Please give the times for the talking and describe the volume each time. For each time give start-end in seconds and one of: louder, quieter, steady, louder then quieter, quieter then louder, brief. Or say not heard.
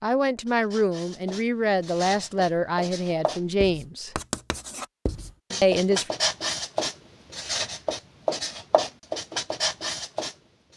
0.0-4.2 steady
5.6-6.1 brief.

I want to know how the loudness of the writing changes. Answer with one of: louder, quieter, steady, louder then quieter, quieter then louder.
louder.